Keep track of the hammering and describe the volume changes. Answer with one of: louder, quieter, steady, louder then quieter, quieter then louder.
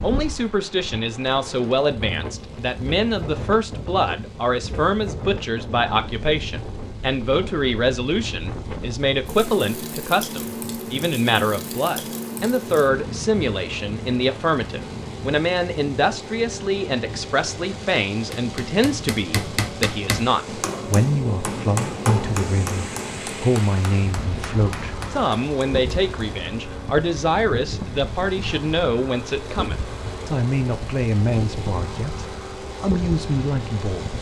quieter.